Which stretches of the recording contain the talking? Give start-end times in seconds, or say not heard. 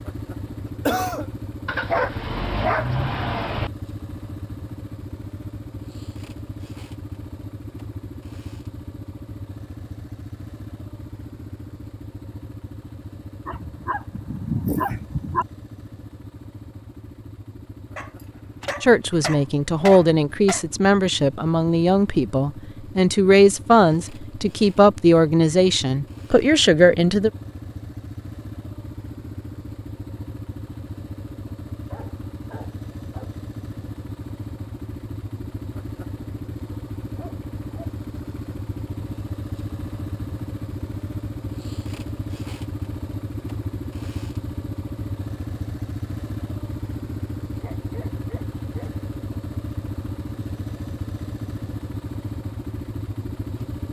18.8-27.3.